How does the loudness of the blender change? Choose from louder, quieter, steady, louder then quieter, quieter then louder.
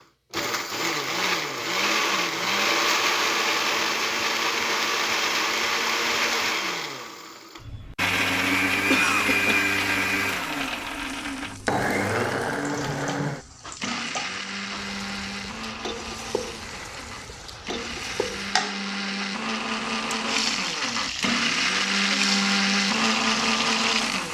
quieter then louder.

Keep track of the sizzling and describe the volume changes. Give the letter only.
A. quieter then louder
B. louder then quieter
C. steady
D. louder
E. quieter
D.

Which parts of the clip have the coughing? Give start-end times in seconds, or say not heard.
8.9-9.7.